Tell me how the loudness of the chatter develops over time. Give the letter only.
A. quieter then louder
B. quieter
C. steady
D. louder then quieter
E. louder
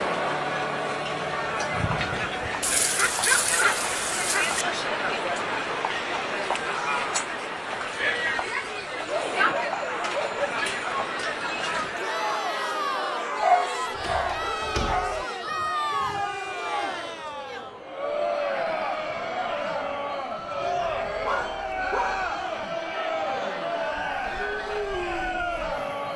C.